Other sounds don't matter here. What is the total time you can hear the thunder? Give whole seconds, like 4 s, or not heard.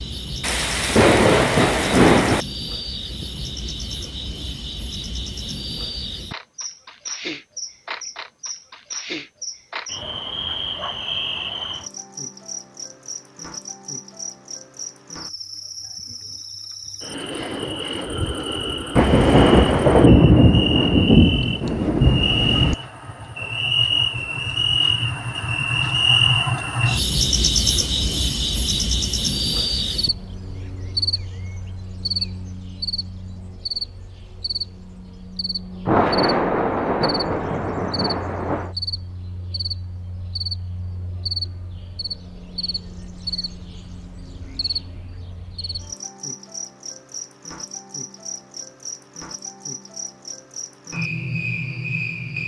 9 s.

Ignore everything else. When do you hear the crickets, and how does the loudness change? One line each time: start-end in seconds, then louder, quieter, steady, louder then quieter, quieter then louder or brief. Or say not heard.
0.0-52.4 louder then quieter.